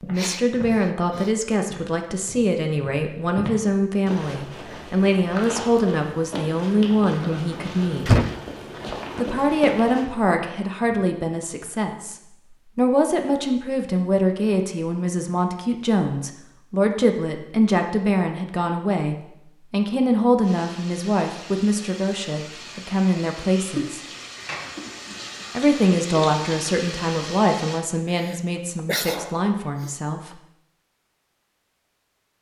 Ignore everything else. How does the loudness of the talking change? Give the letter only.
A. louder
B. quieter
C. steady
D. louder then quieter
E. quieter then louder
C.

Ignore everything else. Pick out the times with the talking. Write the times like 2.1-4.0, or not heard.
0.0-8.1, 9.2-24.0, 25.6-30.4.